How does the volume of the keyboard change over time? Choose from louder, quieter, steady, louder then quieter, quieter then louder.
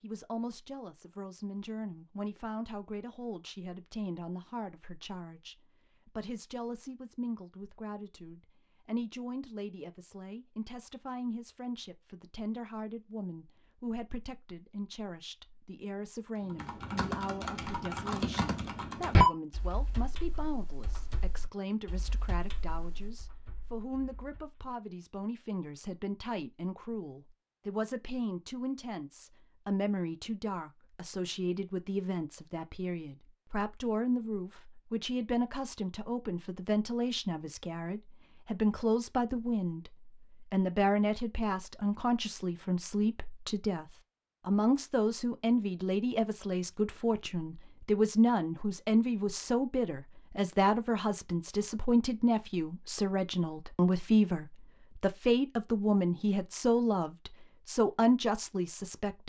louder then quieter.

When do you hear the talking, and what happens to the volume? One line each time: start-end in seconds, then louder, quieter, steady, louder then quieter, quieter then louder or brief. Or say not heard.
0.0-59.2 louder.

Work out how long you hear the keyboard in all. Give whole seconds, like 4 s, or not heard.
8 s.